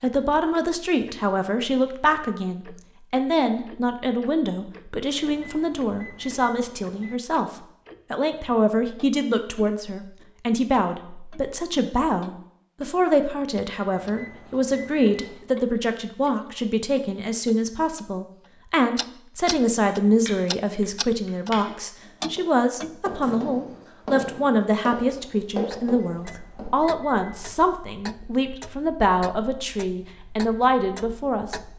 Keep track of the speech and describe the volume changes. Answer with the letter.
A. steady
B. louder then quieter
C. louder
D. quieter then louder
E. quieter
A.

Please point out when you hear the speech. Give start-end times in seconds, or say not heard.
0.0-31.6.